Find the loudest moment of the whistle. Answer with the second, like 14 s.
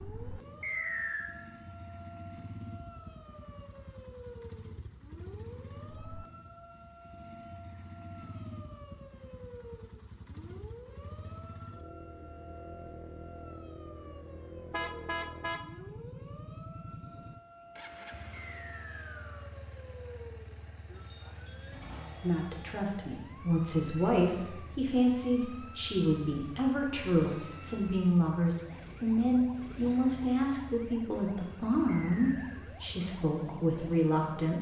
1 s.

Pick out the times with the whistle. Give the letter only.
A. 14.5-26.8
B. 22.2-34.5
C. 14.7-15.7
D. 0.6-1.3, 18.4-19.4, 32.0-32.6
D.